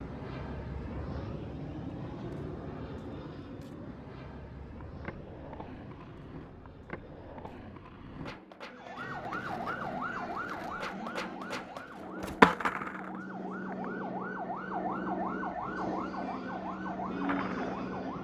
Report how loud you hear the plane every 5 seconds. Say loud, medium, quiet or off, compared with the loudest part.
loud, quiet, loud, loud.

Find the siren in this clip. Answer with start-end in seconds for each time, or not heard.
8.7-18.1.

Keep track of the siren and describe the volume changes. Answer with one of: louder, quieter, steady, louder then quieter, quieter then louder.
quieter then louder.